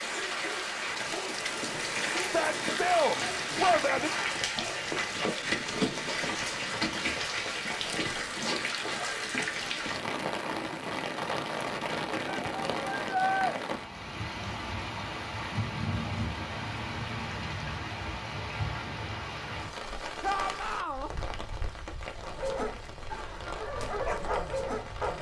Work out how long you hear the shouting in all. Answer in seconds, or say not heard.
4 s.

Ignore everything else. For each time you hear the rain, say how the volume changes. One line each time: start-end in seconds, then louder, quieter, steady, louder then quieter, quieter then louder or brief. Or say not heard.
0.0-25.1 quieter.